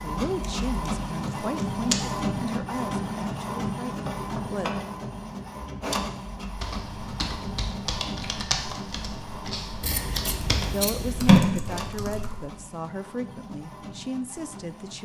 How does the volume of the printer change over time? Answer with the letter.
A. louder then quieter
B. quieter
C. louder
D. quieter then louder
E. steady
B.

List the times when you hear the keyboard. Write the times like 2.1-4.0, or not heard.
6.5-12.4.